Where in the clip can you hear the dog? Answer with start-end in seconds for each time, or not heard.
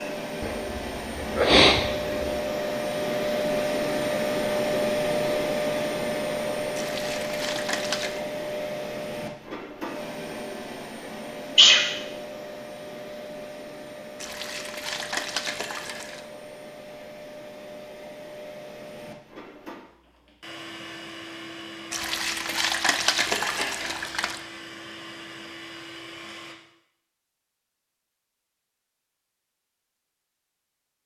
not heard.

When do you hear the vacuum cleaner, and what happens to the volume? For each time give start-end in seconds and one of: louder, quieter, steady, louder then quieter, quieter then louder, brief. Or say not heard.
0.0-26.6 quieter.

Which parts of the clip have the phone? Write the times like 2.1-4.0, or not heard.
not heard.